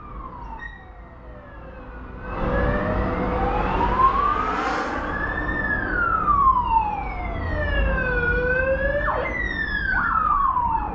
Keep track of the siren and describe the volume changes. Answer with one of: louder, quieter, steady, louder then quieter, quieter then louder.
louder.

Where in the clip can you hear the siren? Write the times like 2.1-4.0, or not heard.
0.0-10.9.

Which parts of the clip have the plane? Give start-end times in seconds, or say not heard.
3.2-6.3.